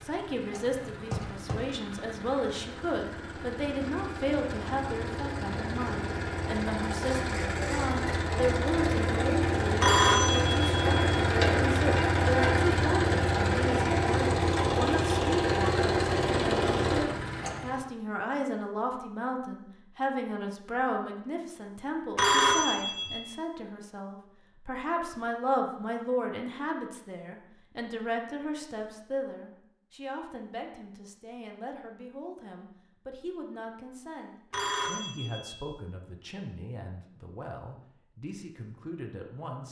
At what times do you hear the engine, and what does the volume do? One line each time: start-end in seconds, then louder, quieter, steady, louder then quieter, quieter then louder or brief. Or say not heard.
0.0-17.9 louder.